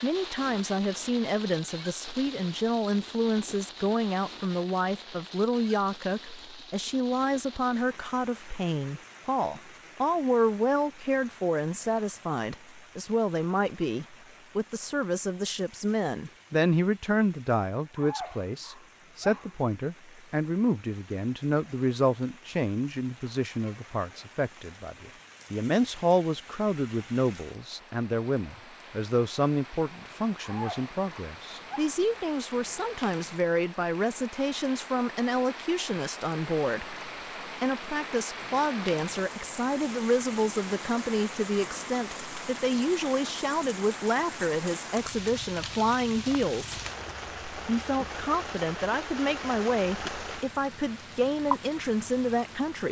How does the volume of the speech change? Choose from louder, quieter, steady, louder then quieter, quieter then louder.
steady.